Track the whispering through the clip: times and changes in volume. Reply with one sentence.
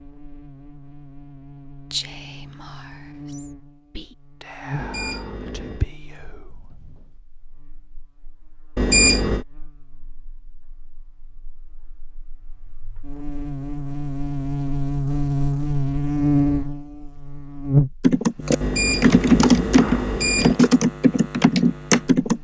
You can hear the whispering from 1.9 to 7.2 s, getting louder then quieter.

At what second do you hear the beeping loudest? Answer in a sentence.
The loudest moment of the beeping is at 9 seconds.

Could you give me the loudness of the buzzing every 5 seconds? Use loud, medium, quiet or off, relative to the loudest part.
quiet, quiet, medium, loud, quiet.